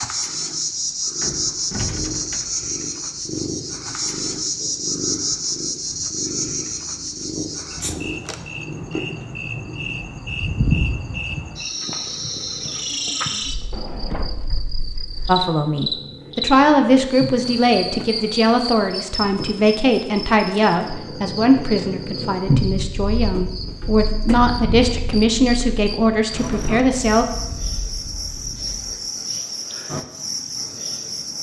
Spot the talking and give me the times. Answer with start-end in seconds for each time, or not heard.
15.2-27.2.